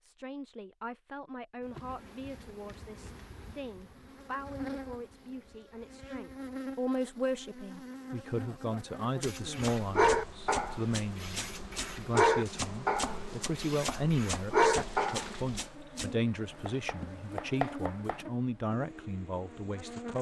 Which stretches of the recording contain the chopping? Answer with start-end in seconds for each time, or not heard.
9.2-18.2.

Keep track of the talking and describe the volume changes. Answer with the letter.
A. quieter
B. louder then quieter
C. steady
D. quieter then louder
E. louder
E.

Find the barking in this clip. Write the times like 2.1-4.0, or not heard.
9.2-15.3.